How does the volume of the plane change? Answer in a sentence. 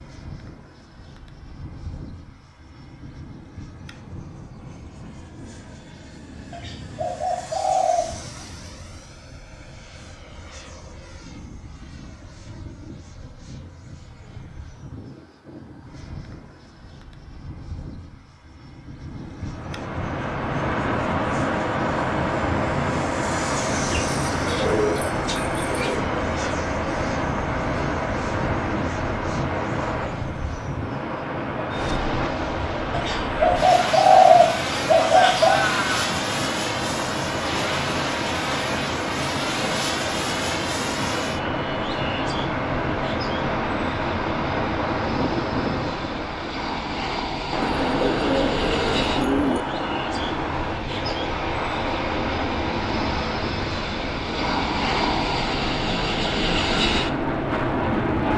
The loudness of the plane goes up.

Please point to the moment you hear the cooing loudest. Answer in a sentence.
The loudest moment of the cooing is at 34 seconds.